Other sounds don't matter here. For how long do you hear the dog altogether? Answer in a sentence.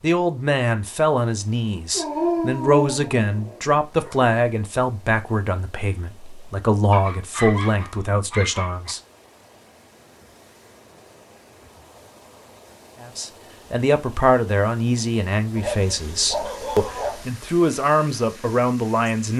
The dog can be heard for 6 seconds in total.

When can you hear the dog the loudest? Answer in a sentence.
The loudest moment of the dog is at 2 seconds.